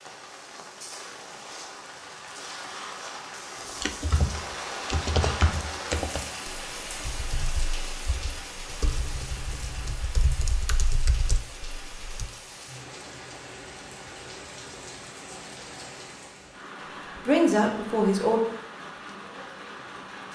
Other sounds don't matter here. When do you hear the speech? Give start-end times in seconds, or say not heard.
17.1-18.4.